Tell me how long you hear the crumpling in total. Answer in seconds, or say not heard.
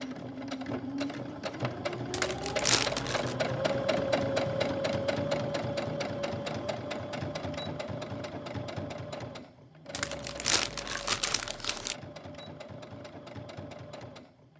3 s.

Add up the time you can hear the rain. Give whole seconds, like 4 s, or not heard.
not heard.